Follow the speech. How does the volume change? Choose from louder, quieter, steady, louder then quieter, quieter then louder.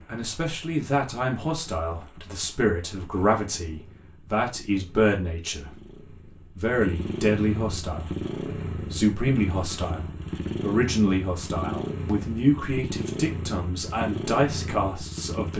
steady.